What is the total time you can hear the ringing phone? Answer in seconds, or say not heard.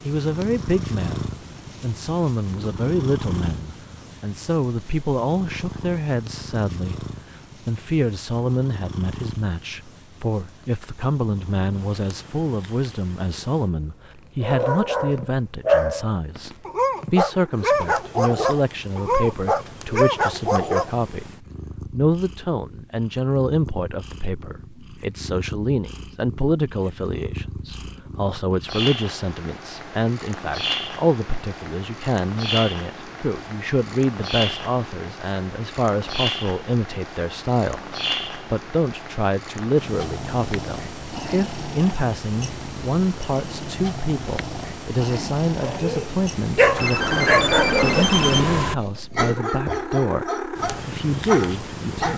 2 s.